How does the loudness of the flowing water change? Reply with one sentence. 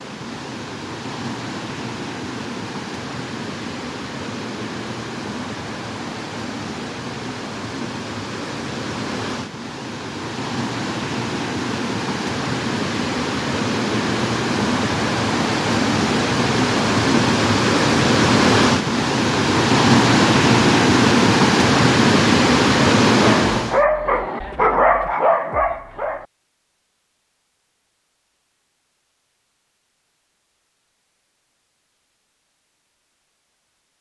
The loudness of the flowing water goes up.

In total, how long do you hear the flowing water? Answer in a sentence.
The flowing water can be heard for 24 seconds in total.